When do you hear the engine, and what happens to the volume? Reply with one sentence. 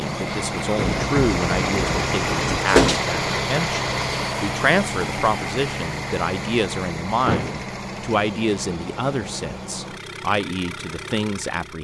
The engine can be heard from 0.0 to 11.7 s, getting quieter.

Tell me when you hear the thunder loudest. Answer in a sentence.
The loudest moment of the thunder is at 1 second.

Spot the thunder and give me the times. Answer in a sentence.
The thunder can be heard from 0.8 to 2.6 s.